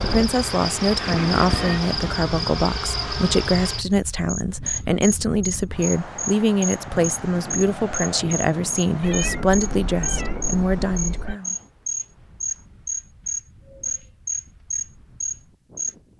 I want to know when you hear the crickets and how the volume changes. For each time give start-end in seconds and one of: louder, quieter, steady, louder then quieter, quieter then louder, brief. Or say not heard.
0.0-15.9 steady.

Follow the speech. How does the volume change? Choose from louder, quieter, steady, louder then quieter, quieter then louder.
steady.